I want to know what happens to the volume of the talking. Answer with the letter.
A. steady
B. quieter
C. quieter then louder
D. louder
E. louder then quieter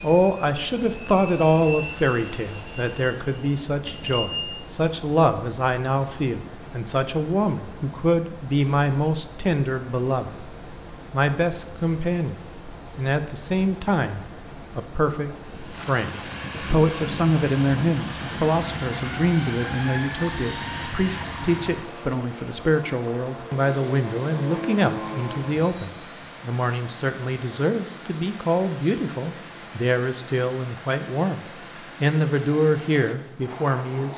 A.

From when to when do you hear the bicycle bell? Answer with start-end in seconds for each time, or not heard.
3.8-4.7.